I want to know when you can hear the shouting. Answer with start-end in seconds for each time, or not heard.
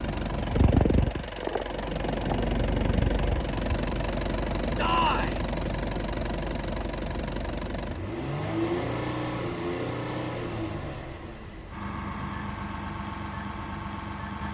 4.8-5.4.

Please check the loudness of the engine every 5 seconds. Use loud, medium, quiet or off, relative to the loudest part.
loud, loud, medium.